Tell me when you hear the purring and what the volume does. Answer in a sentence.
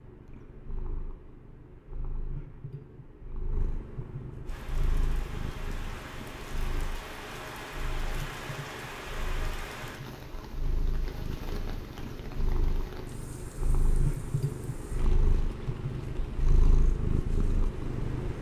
You can hear the purring from 0.0 to 18.3 s, getting louder.